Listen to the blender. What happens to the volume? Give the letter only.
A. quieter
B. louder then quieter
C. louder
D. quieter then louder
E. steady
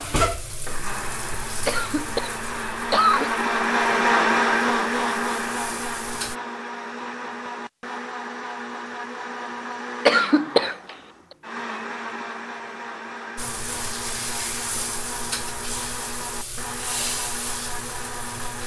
A.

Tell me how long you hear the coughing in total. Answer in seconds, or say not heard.
2 s.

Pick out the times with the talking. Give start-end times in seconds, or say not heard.
not heard.